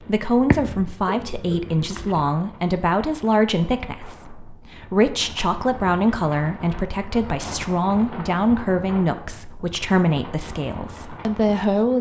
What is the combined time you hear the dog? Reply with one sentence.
You can hear the dog for 2 seconds altogether.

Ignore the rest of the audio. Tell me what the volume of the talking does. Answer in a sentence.
The volume of the talking stays about the same.